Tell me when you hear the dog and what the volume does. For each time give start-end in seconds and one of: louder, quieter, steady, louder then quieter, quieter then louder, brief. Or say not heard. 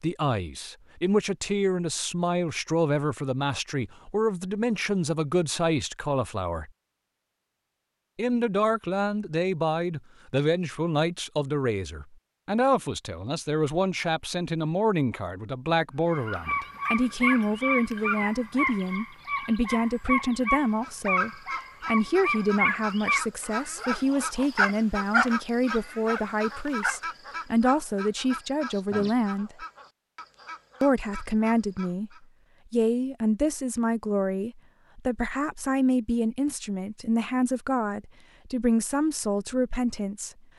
16.1-27.0 steady.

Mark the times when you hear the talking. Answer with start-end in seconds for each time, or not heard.
0.0-6.7, 8.2-29.6, 30.8-32.1, 32.7-40.3.